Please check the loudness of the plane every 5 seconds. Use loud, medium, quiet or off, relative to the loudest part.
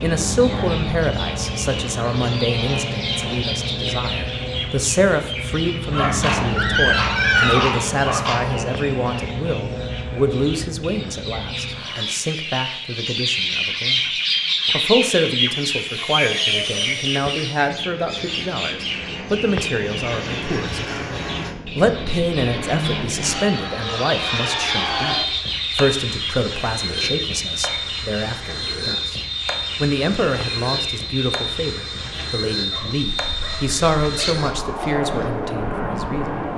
loud, loud, medium, medium, loud, loud, loud, loud.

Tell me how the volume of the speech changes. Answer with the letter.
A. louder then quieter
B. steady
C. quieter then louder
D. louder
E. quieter
B.